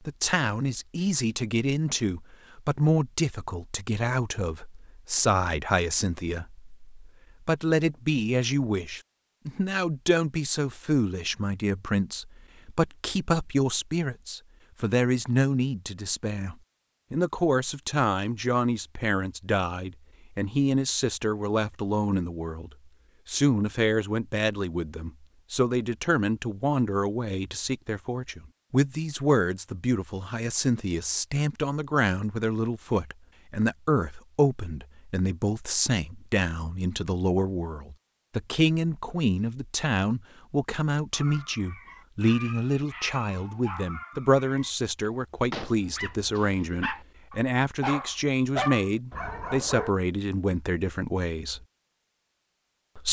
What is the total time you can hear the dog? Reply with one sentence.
You can hear the dog for 9 seconds altogether.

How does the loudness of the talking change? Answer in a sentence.
The loudness of the talking stays about the same.